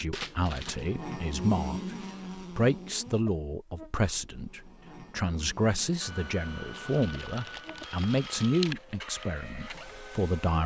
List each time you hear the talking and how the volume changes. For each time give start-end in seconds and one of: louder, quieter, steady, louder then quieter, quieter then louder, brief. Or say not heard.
0.0-10.6 steady.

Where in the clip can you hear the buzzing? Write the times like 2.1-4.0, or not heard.
0.1-7.9.